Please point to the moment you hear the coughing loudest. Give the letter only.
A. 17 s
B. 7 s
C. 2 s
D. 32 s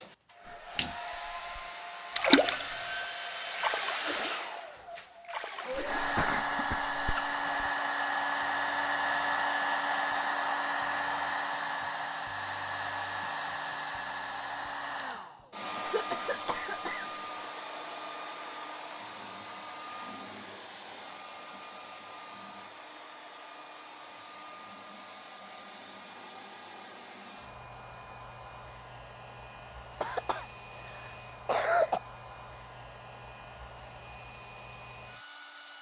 D.